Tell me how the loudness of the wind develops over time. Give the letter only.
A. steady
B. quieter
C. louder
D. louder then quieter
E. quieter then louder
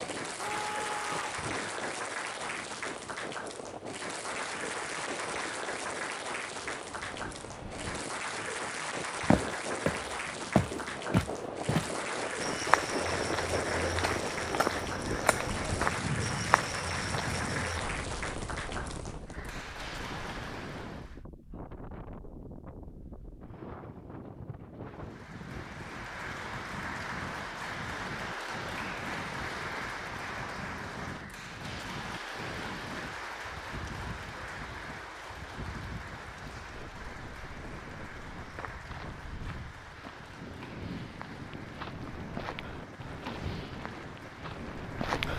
D.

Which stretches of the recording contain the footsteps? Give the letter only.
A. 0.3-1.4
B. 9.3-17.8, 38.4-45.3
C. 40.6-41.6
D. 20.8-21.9
B.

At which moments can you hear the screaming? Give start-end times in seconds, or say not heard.
0.3-1.4.